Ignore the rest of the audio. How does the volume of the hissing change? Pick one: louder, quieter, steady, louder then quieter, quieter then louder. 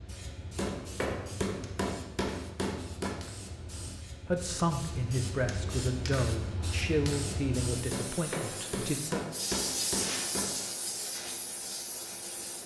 louder.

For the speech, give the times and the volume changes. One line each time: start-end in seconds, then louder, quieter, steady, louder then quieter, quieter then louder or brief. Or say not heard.
4.2-9.2 quieter.